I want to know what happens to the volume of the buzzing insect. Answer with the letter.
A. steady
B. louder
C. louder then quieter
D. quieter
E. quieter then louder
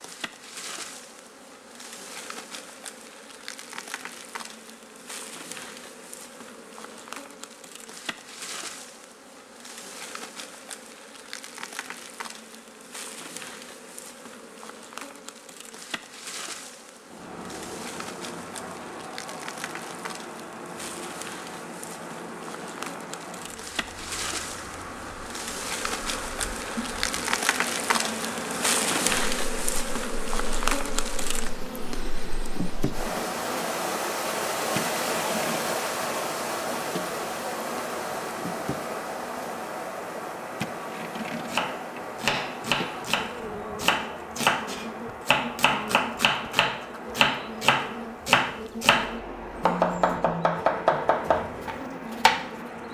C.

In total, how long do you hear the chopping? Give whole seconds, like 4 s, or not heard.
11 s.